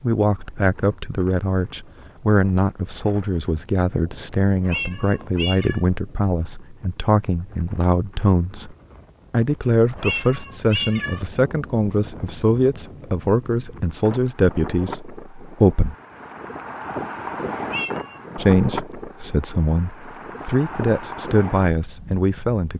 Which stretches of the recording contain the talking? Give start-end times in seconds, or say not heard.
0.0-15.9, 18.4-22.7.